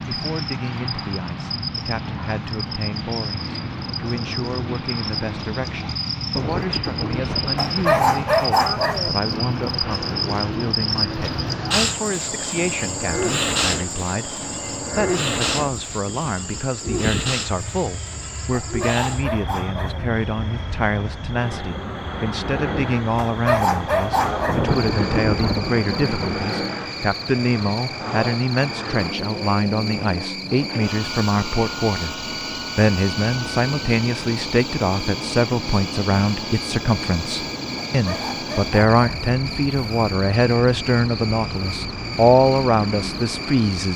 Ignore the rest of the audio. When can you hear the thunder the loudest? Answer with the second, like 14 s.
25 s.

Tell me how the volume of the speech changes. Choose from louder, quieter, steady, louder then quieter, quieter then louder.
louder.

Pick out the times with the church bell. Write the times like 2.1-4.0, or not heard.
not heard.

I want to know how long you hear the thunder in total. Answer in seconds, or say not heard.
4 s.